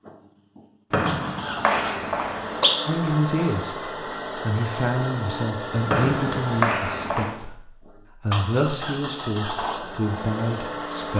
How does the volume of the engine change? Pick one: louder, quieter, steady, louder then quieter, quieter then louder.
steady.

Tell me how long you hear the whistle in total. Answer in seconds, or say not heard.
3 s.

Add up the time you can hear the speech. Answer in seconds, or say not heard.
8 s.